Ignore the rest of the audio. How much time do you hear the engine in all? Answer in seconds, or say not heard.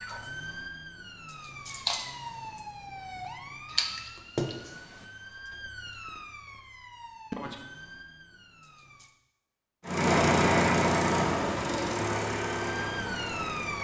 4 s.